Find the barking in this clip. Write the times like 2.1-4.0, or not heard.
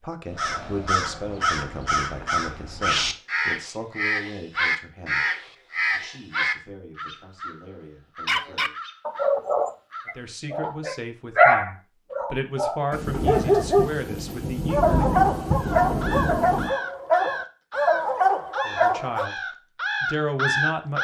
8.2-19.3.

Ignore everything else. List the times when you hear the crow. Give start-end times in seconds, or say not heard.
0.3-10.8, 15.6-20.9.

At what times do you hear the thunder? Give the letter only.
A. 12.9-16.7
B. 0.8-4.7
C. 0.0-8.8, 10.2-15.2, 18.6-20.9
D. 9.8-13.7
A.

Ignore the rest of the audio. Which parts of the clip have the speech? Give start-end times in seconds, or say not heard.
0.0-8.8, 10.2-15.2, 18.6-20.9.